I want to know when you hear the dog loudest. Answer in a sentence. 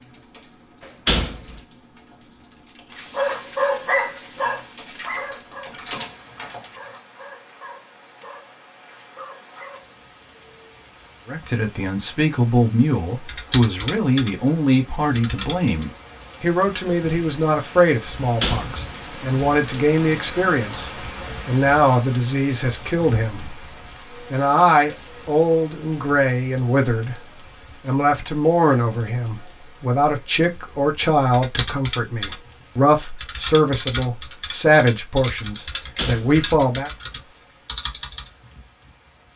The volume of the dog peaks at 4 seconds.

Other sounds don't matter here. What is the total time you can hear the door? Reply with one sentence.
You can hear the door for 2 seconds altogether.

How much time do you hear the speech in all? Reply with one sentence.
The speech can be heard for 24 seconds in total.